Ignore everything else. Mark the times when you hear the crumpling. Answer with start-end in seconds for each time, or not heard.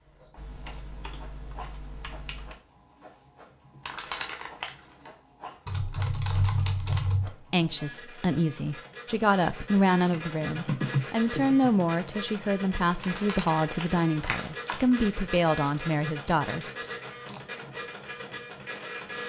3.9-5.1, 13.0-15.0.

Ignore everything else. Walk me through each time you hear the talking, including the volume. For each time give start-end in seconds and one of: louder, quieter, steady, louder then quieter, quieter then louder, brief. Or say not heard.
7.2-16.6 steady.